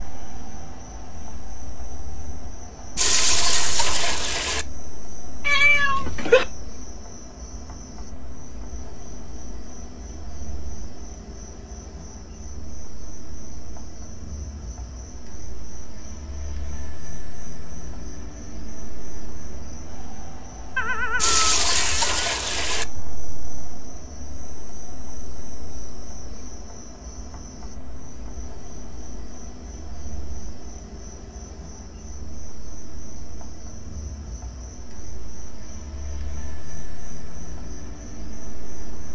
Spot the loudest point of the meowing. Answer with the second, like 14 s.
6 s.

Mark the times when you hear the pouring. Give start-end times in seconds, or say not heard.
3.0-4.7, 21.1-22.9.